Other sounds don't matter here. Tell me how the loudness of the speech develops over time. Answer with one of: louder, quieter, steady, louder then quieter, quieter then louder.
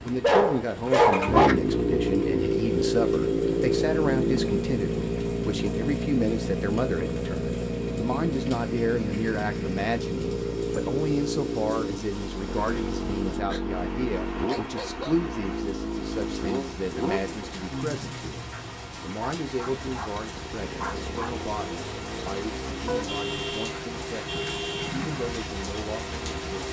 quieter.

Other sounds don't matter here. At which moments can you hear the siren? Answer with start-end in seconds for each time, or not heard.
not heard.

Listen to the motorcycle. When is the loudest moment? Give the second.
2 s.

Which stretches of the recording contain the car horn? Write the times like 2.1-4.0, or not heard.
22.9-24.9.